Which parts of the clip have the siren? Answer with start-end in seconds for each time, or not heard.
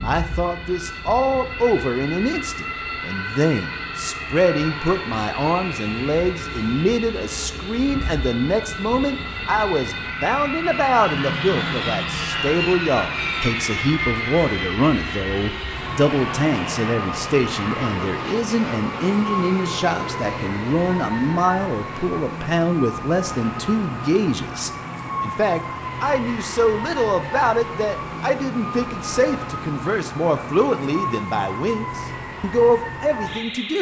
0.0-33.7.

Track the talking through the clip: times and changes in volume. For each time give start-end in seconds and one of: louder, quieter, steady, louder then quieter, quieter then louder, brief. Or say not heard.
0.0-33.7 steady.